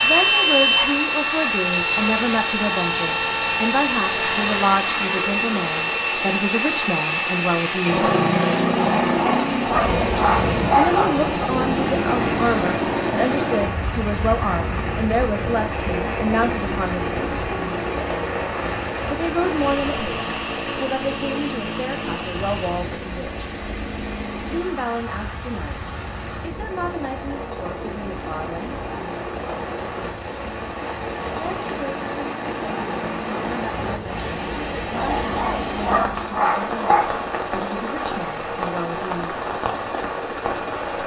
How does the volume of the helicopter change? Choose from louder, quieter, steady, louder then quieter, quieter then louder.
quieter.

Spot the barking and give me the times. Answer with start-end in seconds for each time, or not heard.
8.8-11.2, 34.9-37.1.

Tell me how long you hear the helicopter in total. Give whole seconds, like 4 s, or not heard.
41 s.